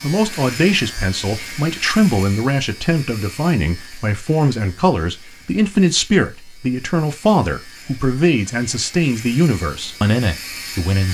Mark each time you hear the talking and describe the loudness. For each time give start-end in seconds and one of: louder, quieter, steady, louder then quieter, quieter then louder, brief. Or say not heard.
0.0-11.0 steady.